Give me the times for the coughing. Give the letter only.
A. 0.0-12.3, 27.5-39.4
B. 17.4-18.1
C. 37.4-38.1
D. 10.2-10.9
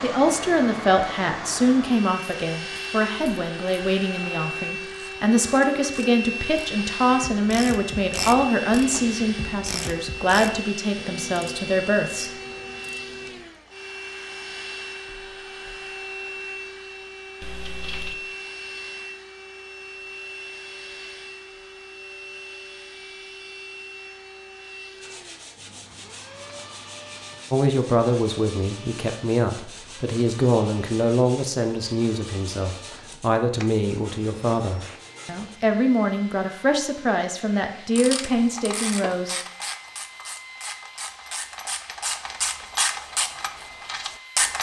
B.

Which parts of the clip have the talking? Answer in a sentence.
You can hear the talking from 0.0 to 12.3 s and from 27.5 to 39.4 s.